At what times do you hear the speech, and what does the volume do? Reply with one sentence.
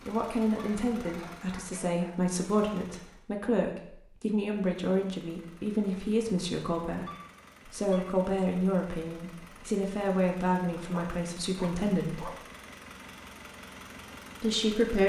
The speech can be heard from 0.1 to 7.0 s, at a steady volume; from 7.7 to 12.3 s, getting quieter then louder; and briefly from 14.4 to 15.0 s.